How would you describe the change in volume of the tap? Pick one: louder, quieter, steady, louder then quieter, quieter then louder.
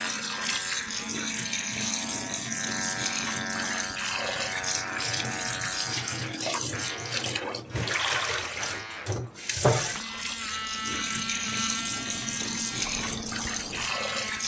steady.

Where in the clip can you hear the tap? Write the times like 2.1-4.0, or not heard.
0.0-14.4.